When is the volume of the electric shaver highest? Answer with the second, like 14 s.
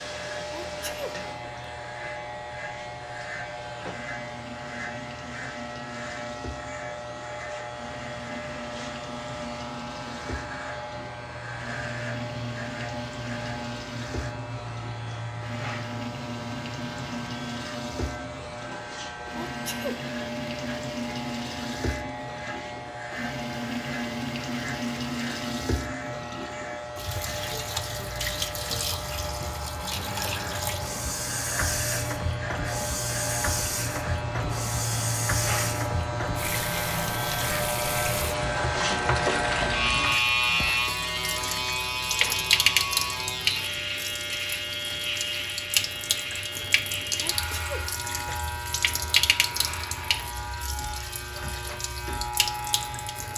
40 s.